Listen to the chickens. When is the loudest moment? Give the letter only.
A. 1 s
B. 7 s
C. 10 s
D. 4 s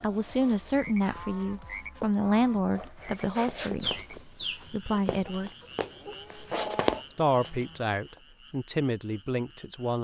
D.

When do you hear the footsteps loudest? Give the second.
7 s.